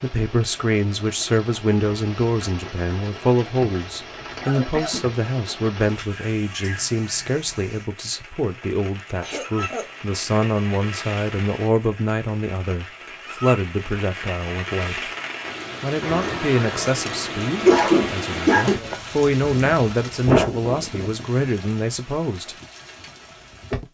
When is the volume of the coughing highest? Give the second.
18 s.